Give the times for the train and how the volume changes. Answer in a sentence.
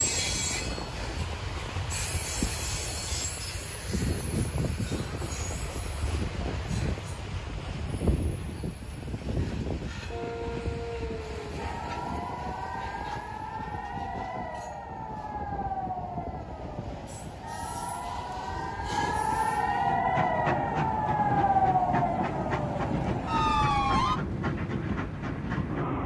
The train can be heard from 0.0 to 26.0 s, getting quieter then louder.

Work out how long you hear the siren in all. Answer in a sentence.
You can hear the siren for 14 seconds altogether.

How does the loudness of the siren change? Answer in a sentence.
The volume of the siren goes up.